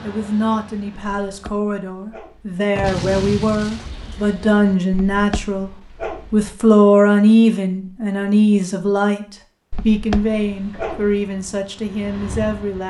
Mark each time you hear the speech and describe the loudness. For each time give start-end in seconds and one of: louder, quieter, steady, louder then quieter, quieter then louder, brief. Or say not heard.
0.0-12.8 louder then quieter.